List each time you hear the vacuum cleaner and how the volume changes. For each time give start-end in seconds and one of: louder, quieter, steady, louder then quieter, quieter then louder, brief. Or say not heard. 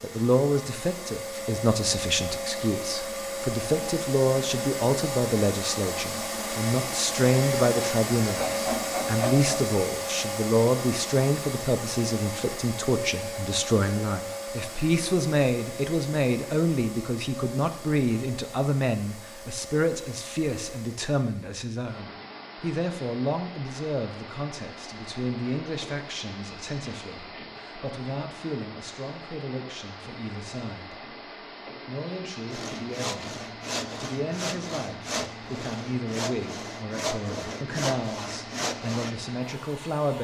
0.0-40.1 quieter.